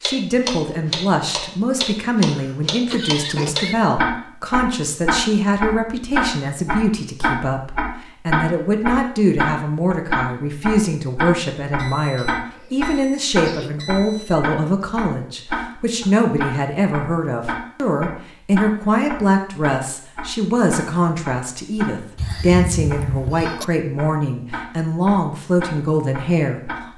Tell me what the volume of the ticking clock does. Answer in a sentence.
The loudness of the ticking clock goes down.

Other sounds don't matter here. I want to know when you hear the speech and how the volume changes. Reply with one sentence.
You can hear the speech from 0.0 to 26.6 s, at a steady volume.